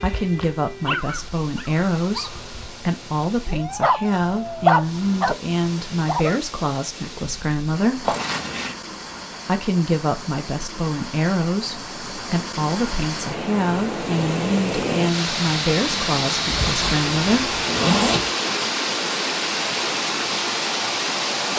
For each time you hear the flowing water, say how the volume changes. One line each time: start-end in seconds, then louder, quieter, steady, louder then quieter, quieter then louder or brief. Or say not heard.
0.0-21.5 louder.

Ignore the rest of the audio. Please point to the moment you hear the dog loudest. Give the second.
5 s.